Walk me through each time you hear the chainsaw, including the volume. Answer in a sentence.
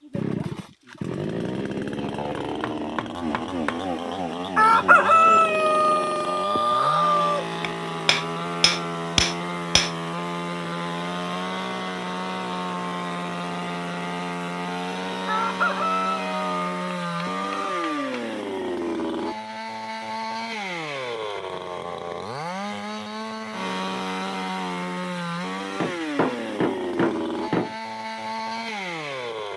You can hear the chainsaw from 0.0 to 29.5 s, at a steady volume.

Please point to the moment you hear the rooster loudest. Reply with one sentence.
The volume of the rooster peaks at 5 seconds.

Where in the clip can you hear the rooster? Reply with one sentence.
You can hear the rooster from 4.5 to 7.5 s and from 15.2 to 18.1 s.